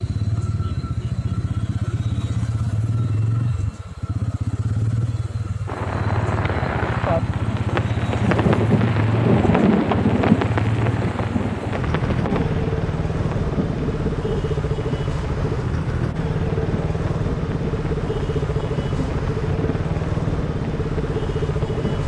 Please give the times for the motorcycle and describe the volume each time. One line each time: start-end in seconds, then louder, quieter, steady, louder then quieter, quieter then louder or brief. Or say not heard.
0.0-22.0 steady.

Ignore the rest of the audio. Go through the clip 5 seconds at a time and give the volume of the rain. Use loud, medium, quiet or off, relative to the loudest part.
off, loud, loud, medium, medium.